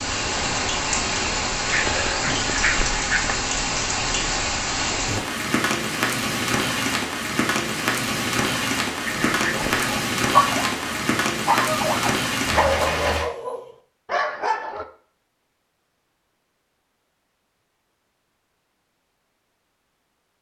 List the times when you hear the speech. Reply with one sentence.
The speech can't be heard in this clip.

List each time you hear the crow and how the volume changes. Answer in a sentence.
The crow can't be heard in this clip.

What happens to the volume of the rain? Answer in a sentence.
The volume of the rain stays about the same.